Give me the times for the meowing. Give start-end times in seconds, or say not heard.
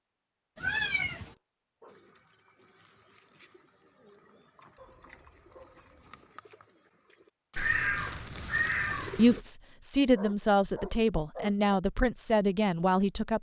0.6-1.4, 7.5-9.4.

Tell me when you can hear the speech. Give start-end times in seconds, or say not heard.
9.2-13.3.